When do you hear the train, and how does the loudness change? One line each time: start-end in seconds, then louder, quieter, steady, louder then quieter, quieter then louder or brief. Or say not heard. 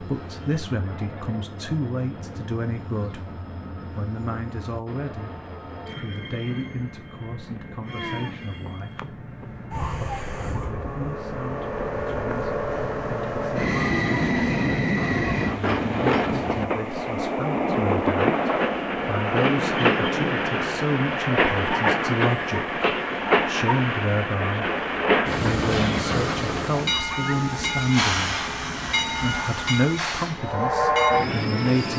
0.0-31.9 louder.